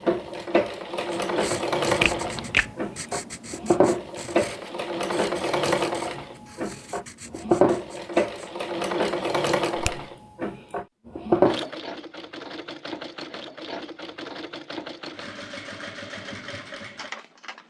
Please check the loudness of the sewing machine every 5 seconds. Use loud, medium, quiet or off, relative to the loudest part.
loud, loud, loud, quiet.